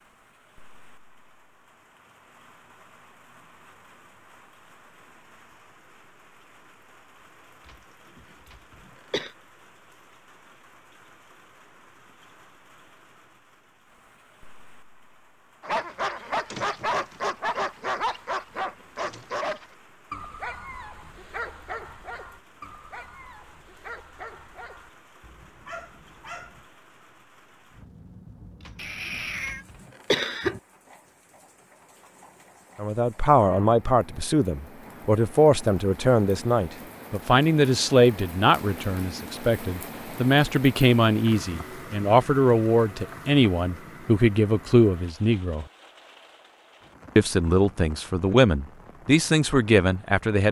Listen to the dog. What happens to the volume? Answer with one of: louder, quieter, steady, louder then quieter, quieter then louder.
quieter.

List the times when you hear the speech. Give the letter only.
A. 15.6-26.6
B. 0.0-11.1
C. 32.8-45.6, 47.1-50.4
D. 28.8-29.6
C.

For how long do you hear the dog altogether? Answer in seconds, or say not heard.
11 s.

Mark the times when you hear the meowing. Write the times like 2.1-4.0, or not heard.
28.8-29.6.